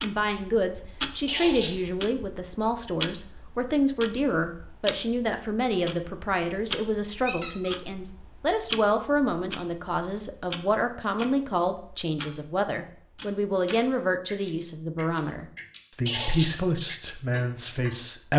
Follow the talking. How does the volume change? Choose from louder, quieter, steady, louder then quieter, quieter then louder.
steady.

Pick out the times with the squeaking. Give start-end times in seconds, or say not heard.
1.2-1.8, 7.2-7.8, 16.1-16.6.